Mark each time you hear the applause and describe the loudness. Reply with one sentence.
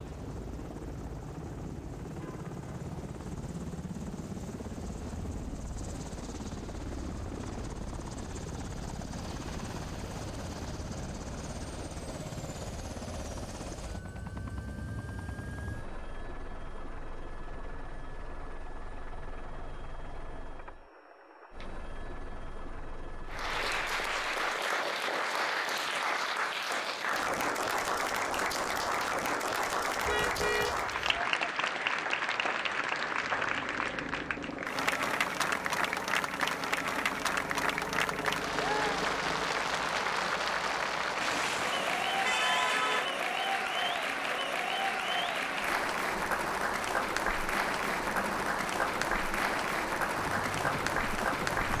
The applause can be heard from 23.2 to 51.7 s, at a steady volume.